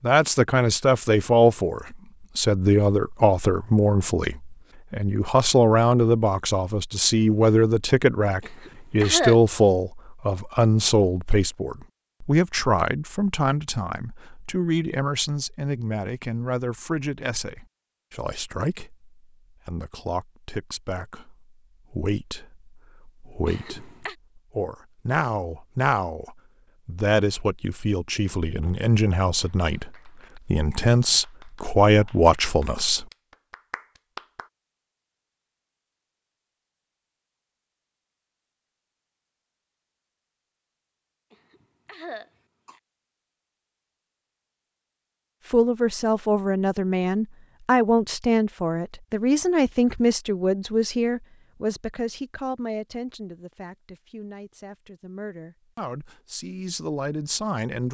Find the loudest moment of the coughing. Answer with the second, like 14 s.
9 s.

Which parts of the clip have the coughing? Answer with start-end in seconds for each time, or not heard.
8.4-9.3, 23.4-24.1, 41.3-42.8.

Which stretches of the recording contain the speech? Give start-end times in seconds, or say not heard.
0.0-33.0, 45.5-57.8.